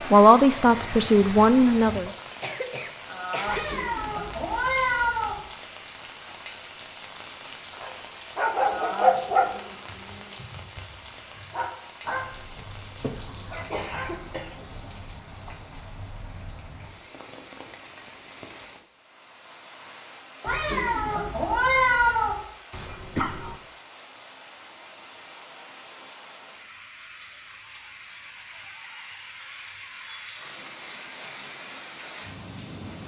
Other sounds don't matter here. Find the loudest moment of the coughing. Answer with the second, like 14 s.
23 s.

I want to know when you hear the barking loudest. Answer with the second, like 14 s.
9 s.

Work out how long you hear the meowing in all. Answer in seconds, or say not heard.
4 s.